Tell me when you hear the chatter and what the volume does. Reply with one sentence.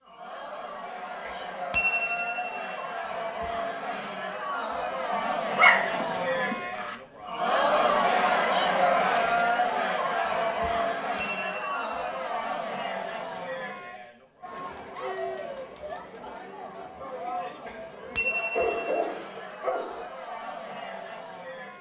The chatter can be heard from 0.0 to 21.7 s, getting louder then quieter.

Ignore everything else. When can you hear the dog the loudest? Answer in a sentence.
The volume of the dog peaks at 6 seconds.